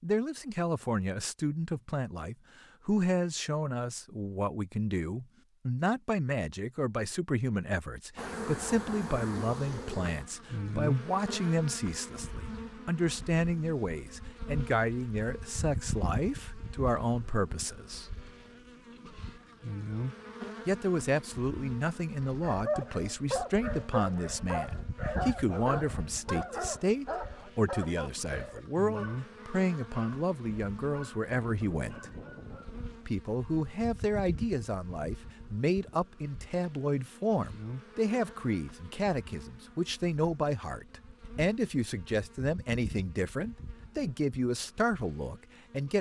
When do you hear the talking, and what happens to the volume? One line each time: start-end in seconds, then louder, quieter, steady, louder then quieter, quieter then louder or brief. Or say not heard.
0.0-18.1 steady
20.6-32.1 steady
33.0-45.9 steady.